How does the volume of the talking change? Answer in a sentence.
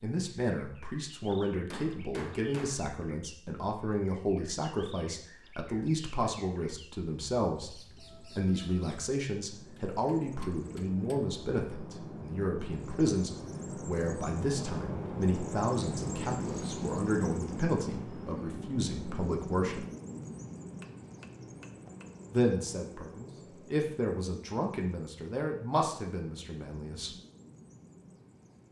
The loudness of the talking stays about the same.